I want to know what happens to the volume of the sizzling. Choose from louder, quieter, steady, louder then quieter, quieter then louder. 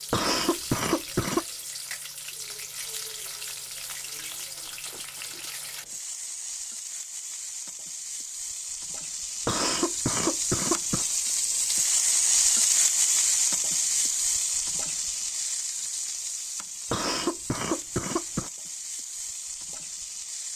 louder then quieter.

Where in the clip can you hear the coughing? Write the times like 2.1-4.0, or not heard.
0.1-1.4, 9.4-11.1, 16.9-18.5.